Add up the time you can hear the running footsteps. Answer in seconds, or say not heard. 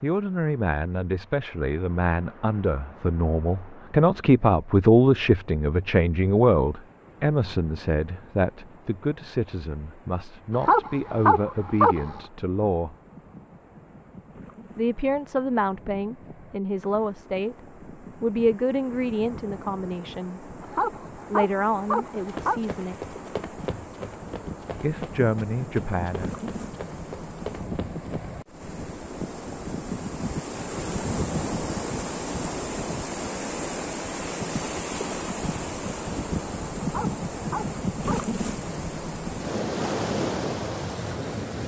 6 s.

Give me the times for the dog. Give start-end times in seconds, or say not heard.
10.5-12.2, 20.6-22.6, 36.8-38.2.